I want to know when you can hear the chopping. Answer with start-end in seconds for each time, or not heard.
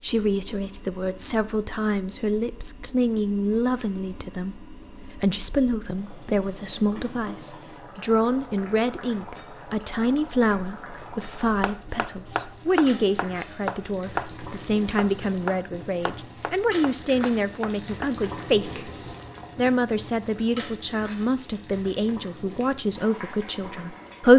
11.6-18.2.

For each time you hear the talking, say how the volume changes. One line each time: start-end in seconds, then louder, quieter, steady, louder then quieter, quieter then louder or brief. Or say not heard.
0.0-24.3 steady.